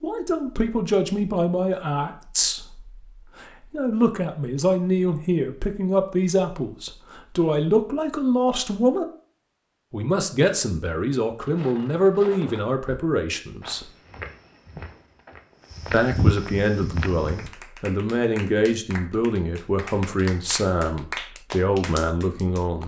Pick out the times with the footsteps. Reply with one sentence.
You can hear the footsteps from 11.4 to 17.5 s.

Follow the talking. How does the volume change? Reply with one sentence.
The volume of the talking stays about the same.